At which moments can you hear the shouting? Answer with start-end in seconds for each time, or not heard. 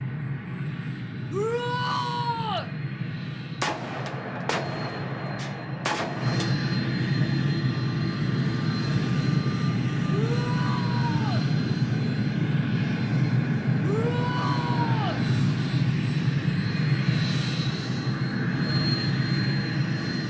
1.3-2.7, 10.1-11.4, 13.8-15.2.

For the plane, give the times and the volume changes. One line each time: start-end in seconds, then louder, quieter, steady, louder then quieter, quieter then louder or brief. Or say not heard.
0.0-20.2 louder.